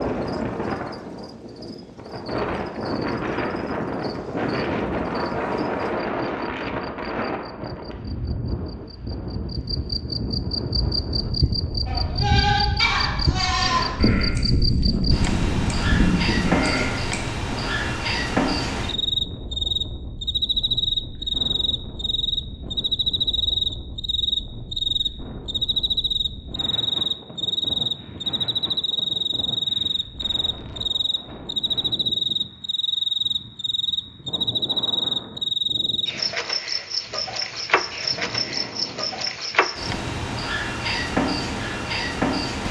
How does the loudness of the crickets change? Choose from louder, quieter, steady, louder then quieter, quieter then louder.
louder.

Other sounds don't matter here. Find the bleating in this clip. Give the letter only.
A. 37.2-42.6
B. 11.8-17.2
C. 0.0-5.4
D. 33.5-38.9
B.